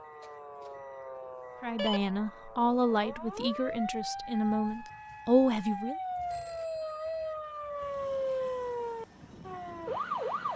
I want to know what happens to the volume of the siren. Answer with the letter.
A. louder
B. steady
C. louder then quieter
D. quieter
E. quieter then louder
A.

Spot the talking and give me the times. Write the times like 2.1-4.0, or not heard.
1.6-6.0.